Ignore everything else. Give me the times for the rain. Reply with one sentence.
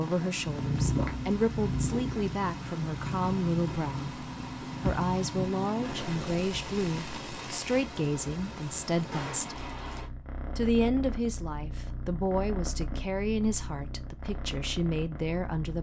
The rain can be heard from 0.0 to 10.1 s.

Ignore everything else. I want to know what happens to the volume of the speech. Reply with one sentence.
The volume of the speech stays about the same.